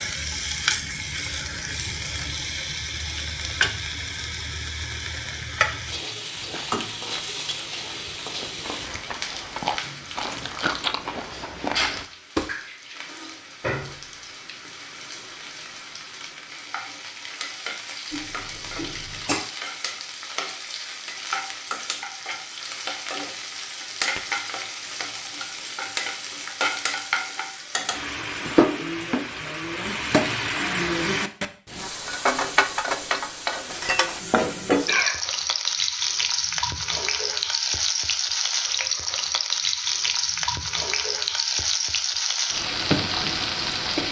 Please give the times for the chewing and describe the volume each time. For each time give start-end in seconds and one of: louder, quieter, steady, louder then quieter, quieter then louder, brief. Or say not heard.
6.3-12.1 louder.